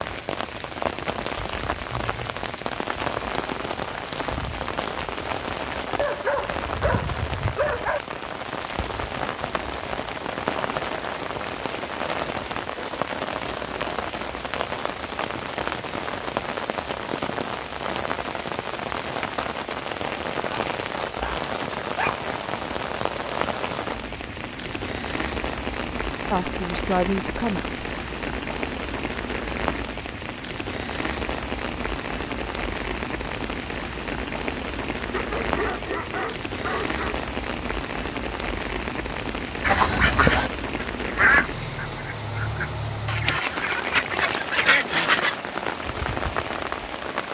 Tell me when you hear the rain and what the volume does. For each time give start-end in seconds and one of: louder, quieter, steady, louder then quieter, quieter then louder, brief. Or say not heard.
0.0-47.2 steady.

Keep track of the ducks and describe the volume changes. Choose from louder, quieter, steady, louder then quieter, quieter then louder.
quieter then louder.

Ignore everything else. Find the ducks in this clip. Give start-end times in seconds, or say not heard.
39.6-45.4.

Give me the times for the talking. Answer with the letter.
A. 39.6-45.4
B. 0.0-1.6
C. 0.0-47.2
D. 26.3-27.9
D.